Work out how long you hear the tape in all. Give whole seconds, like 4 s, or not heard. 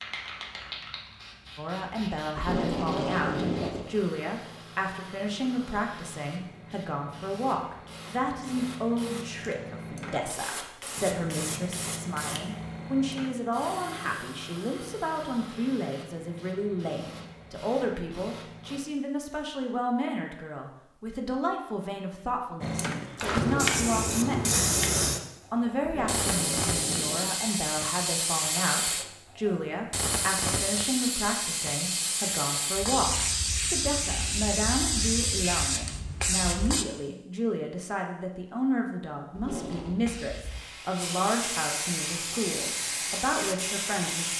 4 s.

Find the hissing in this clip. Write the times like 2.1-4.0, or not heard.
0.0-18.8, 22.6-36.9, 39.9-44.3.